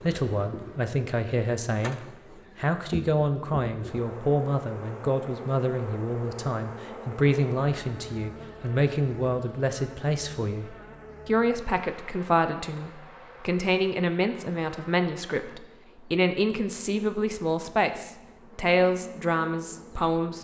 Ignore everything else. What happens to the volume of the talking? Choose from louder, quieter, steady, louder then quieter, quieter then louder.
steady.